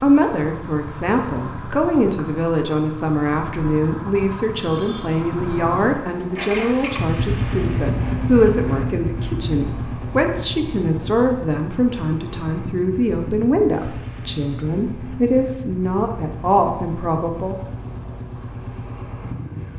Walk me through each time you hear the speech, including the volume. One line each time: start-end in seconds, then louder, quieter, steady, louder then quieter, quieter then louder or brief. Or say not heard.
0.0-17.6 steady.